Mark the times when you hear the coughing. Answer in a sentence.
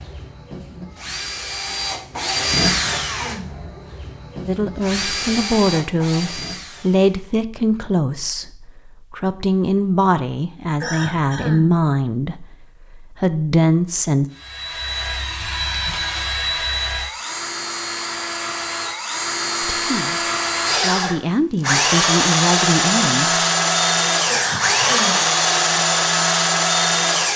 The coughing can be heard from 2.6 to 3.5 s, from 10.8 to 11.7 s and from 24.2 to 25.2 s.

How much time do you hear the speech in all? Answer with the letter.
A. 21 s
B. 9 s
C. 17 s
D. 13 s
D.